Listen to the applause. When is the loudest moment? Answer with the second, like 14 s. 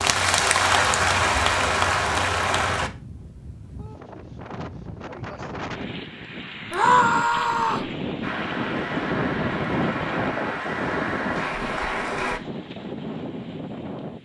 1 s.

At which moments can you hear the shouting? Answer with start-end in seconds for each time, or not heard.
6.7-7.9.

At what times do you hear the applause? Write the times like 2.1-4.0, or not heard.
0.0-2.9, 8.2-12.4.